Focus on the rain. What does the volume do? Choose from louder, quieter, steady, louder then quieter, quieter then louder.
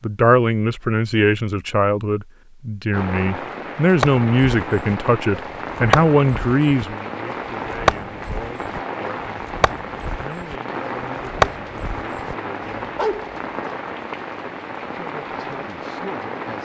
steady.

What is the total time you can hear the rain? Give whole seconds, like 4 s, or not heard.
14 s.